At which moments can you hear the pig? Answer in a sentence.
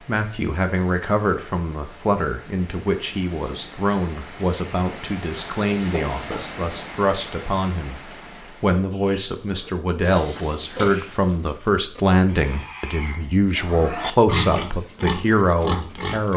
The pig can be heard from 8.9 to 16.3 s.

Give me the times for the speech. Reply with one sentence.
You can hear the speech from 0.1 to 16.3 s.